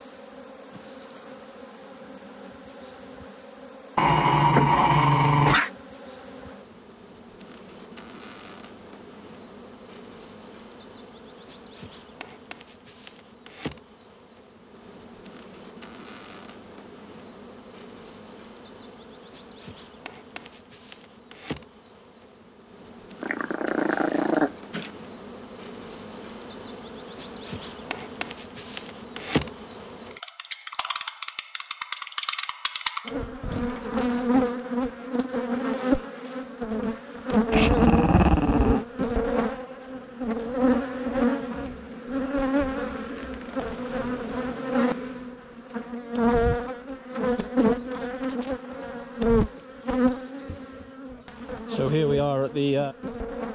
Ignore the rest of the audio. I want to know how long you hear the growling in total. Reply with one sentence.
You can hear the growling for 5 seconds altogether.